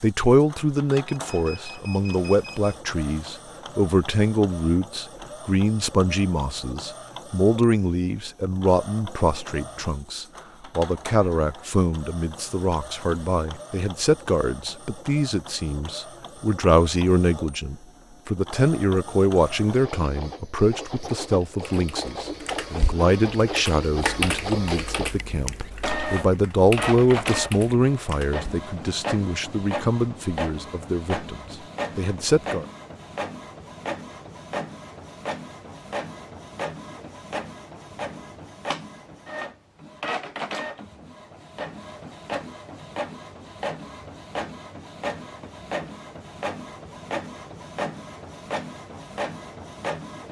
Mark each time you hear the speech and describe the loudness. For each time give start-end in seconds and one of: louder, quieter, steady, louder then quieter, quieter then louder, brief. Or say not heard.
0.0-32.6 steady.